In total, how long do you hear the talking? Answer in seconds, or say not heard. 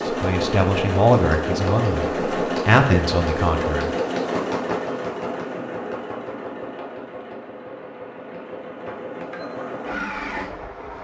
3 s.